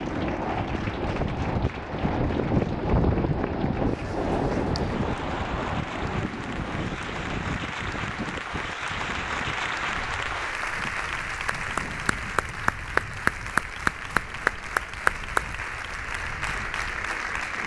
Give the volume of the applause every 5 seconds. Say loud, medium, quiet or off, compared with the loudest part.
quiet, medium, loud, loud.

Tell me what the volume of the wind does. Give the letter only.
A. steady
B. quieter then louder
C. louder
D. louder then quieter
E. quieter
E.